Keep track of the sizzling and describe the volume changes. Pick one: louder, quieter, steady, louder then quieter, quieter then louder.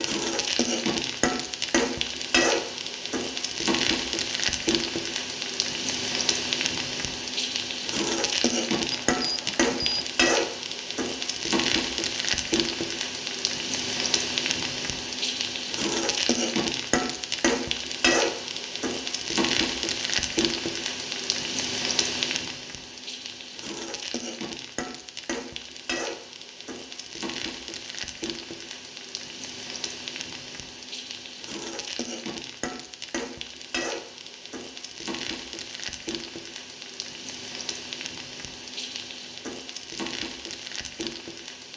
quieter.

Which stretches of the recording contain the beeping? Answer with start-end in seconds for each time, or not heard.
8.9-10.1.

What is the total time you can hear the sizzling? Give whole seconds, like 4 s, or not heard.
42 s.